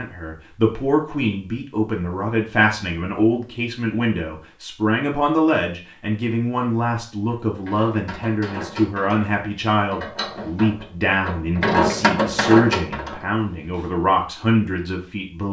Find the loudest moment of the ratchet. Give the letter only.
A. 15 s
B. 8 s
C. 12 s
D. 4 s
C.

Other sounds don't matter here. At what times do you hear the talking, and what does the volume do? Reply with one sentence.
The talking can be heard from 0.0 to 15.4 s, at a steady volume.